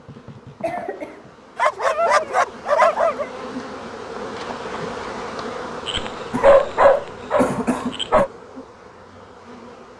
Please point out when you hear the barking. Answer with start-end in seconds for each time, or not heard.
1.6-3.2, 5.8-8.3.